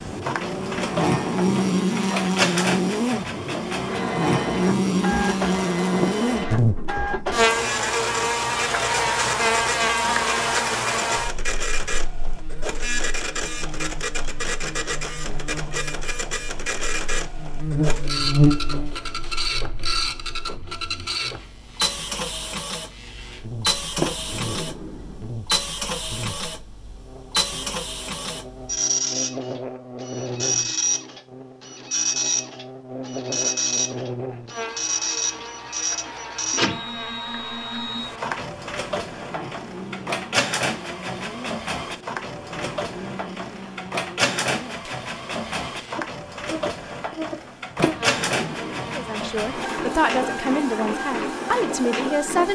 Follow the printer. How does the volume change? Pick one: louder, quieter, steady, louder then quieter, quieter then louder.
steady.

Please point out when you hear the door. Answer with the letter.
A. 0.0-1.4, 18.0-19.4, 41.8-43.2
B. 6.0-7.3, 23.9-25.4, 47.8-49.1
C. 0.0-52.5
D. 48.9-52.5
B.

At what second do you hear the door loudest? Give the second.
24 s.